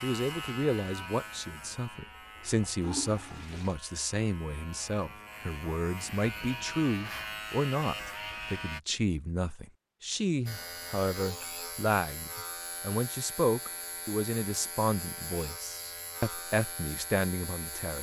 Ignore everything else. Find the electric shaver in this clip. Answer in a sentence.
The electric shaver can be heard from 0.0 to 8.8 s and from 10.4 to 17.9 s.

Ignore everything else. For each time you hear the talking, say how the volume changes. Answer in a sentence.
You can hear the talking from 0.0 to 17.9 s, at a steady volume.